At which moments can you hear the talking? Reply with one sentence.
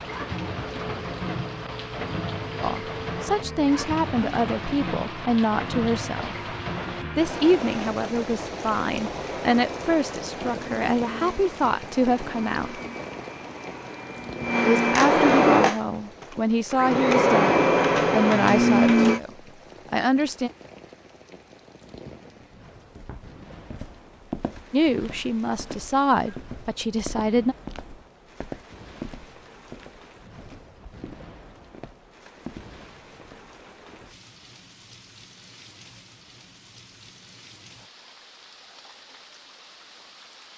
You can hear the talking from 2.6 to 6.3 s, from 7.2 to 12.8 s, from 14.6 to 19.3 s, from 19.9 to 20.5 s and from 24.7 to 27.6 s.